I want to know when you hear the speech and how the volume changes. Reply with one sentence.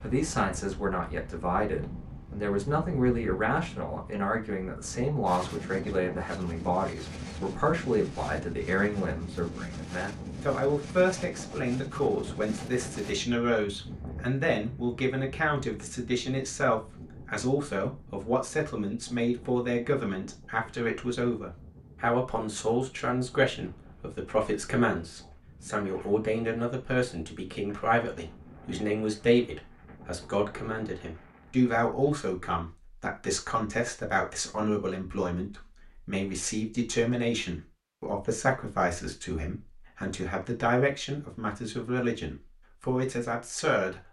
The speech can be heard from 0.0 to 44.0 s, at a steady volume.